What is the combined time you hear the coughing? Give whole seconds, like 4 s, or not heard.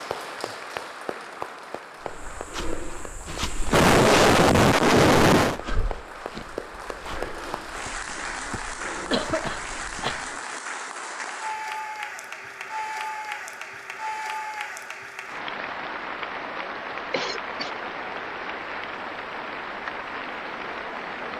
4 s.